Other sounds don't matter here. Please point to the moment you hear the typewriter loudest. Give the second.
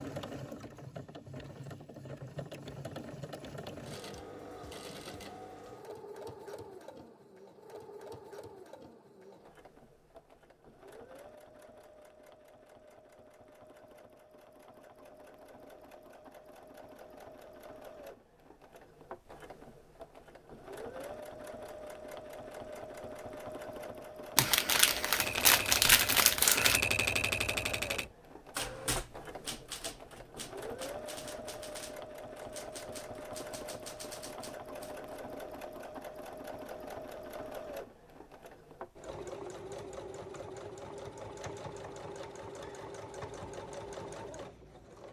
27 s.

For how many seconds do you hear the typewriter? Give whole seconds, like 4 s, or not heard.
10 s.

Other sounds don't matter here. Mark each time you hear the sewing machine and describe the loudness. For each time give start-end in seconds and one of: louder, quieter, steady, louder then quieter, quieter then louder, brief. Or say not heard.
0.0-45.0 quieter then louder.